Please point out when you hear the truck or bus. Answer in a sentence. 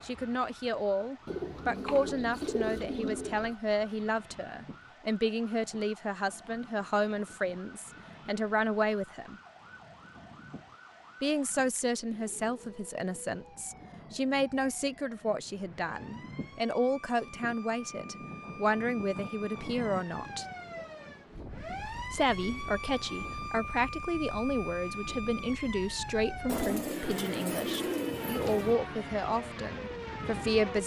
The truck or bus can't be heard in this clip.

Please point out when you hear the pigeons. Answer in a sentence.
You can hear the pigeons from 1.2 to 3.5 s and from 26.4 to 28.8 s.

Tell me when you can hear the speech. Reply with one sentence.
You can hear the speech from 0.0 to 9.3 s, from 11.2 to 20.4 s and from 22.1 to 30.8 s.